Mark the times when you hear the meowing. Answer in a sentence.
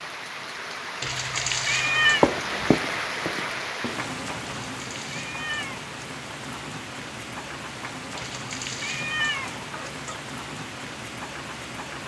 The meowing can be heard from 1.0 to 2.2 s, from 4.6 to 5.8 s and from 8.2 to 10.2 s.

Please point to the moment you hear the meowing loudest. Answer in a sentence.
The loudest moment of the meowing is at 2 seconds.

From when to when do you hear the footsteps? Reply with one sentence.
The footsteps can be heard from 2.0 to 4.1 s.